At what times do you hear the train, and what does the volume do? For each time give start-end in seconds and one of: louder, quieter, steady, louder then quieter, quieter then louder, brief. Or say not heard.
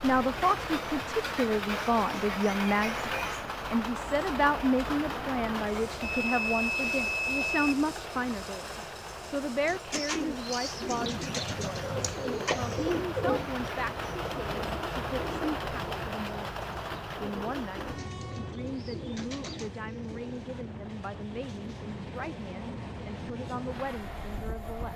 0.0-24.9 quieter.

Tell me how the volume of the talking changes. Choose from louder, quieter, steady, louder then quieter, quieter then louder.
quieter.